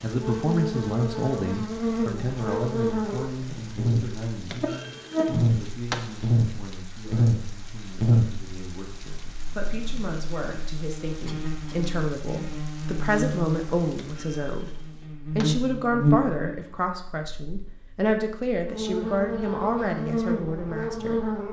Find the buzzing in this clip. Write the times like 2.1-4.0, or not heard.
0.0-21.4.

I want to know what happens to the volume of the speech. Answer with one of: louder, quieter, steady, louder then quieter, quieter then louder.
quieter then louder.